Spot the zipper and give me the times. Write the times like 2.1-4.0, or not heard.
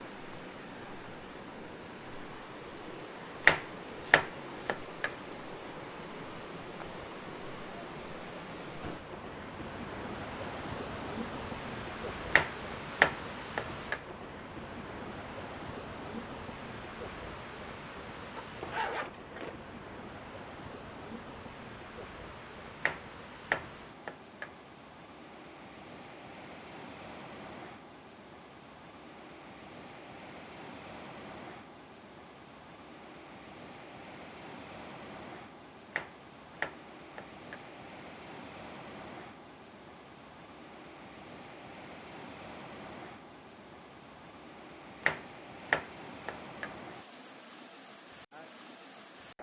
18.4-19.6.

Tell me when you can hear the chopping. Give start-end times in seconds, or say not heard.
3.5-5.1, 12.3-14.0, 22.8-24.5, 35.9-37.6, 45.0-46.7.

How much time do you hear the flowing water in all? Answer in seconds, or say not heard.
49 s.